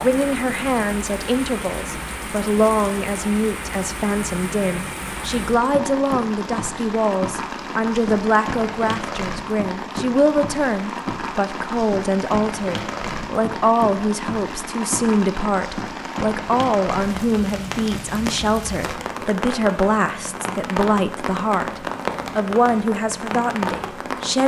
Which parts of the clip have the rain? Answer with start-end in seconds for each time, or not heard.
0.0-24.4.